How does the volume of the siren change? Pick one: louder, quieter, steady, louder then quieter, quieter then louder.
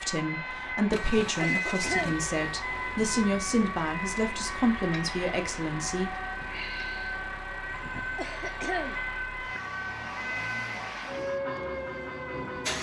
steady.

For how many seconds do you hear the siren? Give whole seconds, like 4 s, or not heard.
13 s.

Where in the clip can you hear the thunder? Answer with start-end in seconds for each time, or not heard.
not heard.